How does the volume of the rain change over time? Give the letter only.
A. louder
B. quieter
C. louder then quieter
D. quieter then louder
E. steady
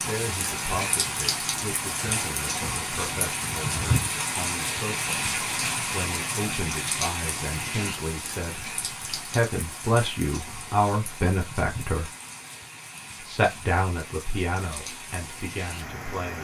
B.